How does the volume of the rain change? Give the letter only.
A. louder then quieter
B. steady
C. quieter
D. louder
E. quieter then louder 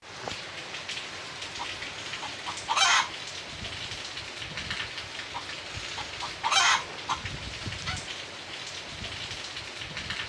B.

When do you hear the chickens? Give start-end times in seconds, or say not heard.
1.6-3.1, 5.3-8.0.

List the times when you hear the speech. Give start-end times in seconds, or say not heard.
not heard.